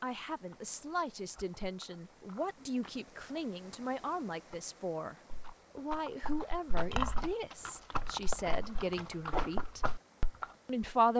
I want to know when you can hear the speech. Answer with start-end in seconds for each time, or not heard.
0.0-5.2, 5.8-9.8, 10.7-11.1.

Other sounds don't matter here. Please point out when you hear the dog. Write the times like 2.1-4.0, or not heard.
not heard.